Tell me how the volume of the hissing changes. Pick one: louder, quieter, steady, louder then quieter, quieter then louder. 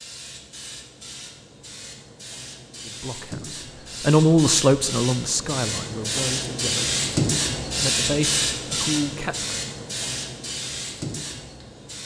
louder then quieter.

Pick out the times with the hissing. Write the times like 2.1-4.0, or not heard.
0.0-12.0.